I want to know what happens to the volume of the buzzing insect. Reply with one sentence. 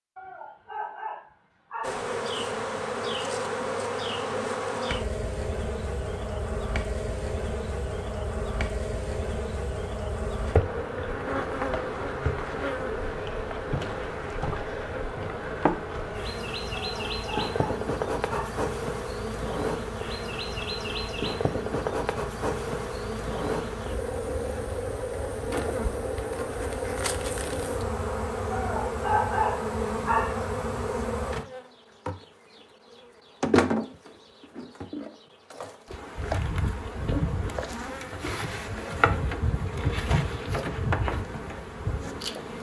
The loudness of the buzzing insect stays about the same.